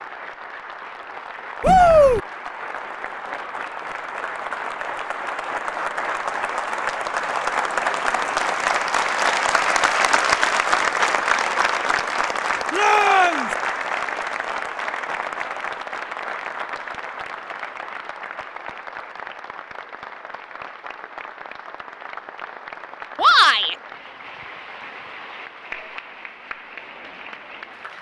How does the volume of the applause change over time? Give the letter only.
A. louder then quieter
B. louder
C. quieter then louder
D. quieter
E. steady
A.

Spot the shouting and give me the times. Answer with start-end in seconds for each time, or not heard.
1.6-2.2, 12.7-13.5, 23.1-23.8.